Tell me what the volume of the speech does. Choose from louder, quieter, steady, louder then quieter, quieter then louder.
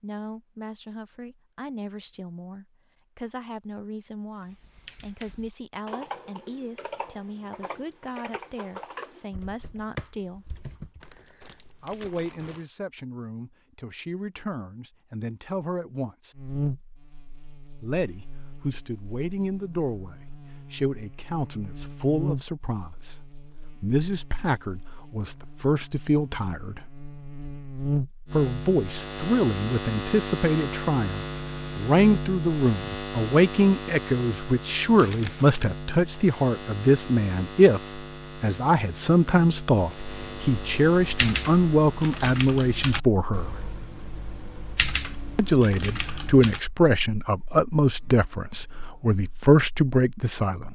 louder.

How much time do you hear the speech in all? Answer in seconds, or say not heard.
45 s.